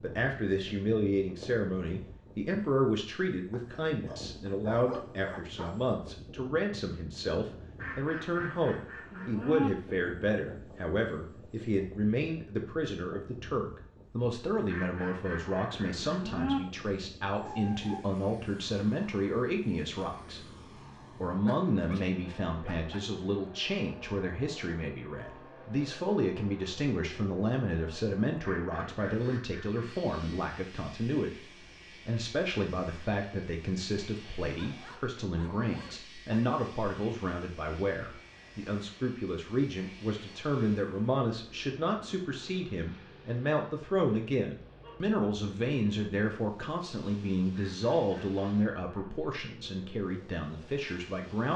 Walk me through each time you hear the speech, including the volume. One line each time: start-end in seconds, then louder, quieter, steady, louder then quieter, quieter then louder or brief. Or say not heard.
0.0-20.4 steady
21.2-51.5 steady.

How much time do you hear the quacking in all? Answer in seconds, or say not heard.
7 s.